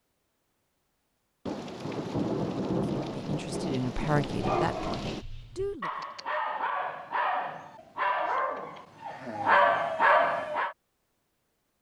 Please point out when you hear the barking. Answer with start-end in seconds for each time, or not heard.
4.2-10.8.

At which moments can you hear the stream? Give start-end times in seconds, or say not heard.
not heard.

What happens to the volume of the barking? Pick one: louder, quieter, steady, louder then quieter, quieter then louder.
louder.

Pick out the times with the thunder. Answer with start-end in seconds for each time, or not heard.
1.4-5.2.